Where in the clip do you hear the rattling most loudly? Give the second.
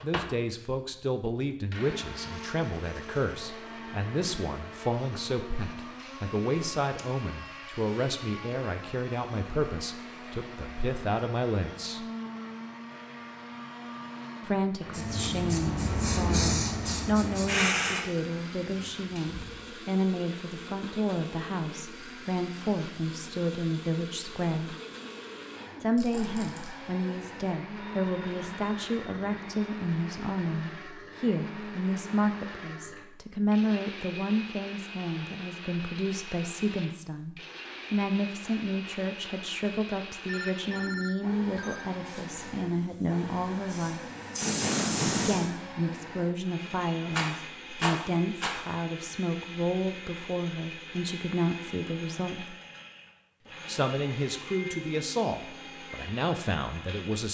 48 s.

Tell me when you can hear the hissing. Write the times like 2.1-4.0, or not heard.
14.8-19.6, 42.0-45.5.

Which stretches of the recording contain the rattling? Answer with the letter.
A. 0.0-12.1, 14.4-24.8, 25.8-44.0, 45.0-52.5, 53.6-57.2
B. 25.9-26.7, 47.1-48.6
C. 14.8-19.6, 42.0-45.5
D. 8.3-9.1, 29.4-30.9
B.